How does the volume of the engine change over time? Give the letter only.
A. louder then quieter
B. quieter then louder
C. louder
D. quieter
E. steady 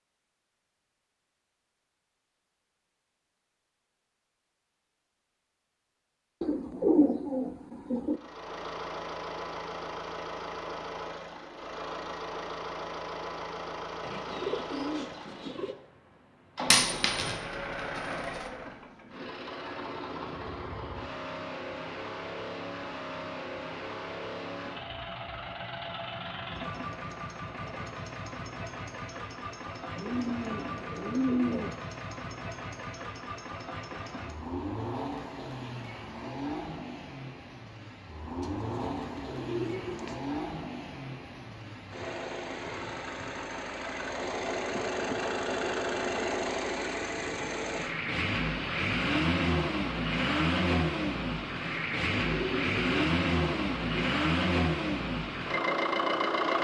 C.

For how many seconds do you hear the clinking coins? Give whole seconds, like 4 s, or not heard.
2 s.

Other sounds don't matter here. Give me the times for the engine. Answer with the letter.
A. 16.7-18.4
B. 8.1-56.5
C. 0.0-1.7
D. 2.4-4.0
B.